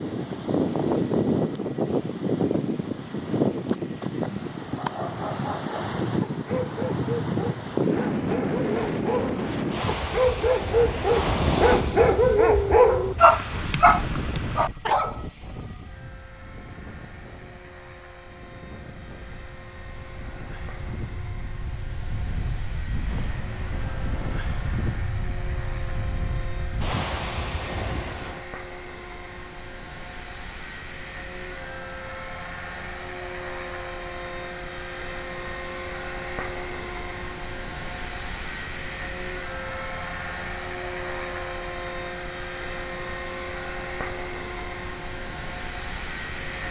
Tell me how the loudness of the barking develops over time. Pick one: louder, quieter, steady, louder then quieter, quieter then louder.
louder.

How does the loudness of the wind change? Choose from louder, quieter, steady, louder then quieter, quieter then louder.
quieter then louder.